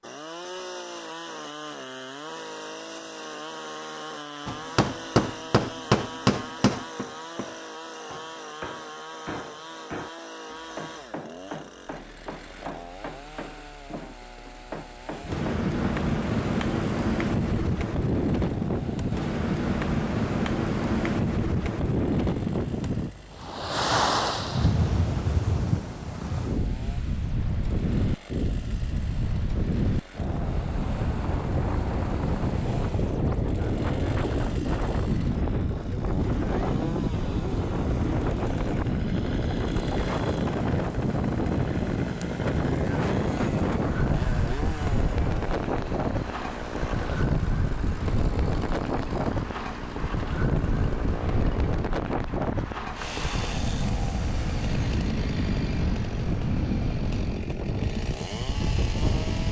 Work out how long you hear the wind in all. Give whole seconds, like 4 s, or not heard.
44 s.